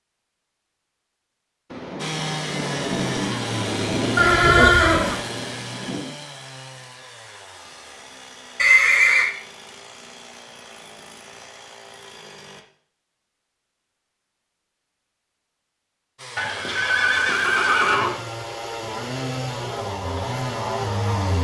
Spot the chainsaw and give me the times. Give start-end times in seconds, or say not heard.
1.9-12.7, 16.1-21.3.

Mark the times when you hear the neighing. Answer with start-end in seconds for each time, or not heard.
4.2-5.2, 8.6-9.3, 16.4-18.2.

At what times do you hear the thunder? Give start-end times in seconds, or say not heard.
1.7-6.2.